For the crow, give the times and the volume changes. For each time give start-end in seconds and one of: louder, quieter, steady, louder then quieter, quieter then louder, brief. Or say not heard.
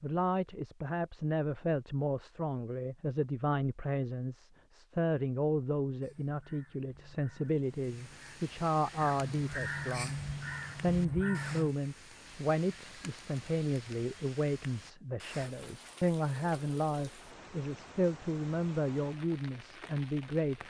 6.0-11.8 louder.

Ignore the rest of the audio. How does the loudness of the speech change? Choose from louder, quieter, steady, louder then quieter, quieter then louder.
steady.